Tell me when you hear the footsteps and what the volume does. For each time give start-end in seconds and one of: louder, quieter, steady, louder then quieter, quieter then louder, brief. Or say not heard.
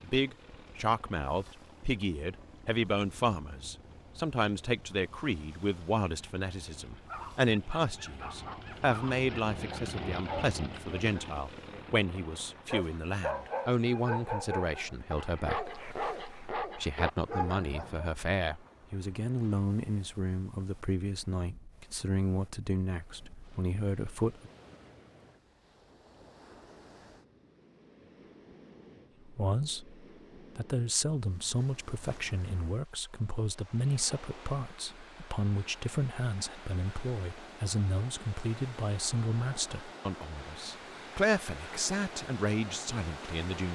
not heard.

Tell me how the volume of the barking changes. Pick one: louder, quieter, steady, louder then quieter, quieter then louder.
louder.